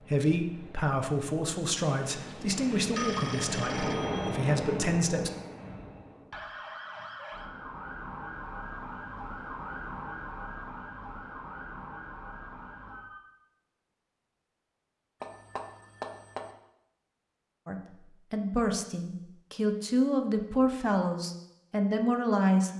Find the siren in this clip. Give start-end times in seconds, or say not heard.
5.5-13.2.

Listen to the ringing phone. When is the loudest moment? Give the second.
3 s.